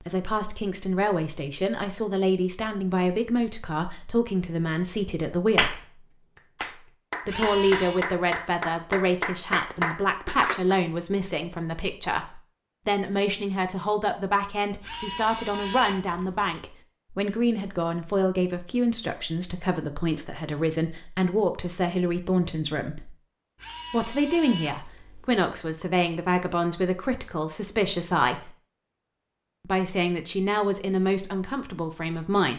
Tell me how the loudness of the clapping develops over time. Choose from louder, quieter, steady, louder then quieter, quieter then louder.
louder.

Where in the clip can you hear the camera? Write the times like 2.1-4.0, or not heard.
7.2-8.1, 14.8-16.6, 23.6-25.6.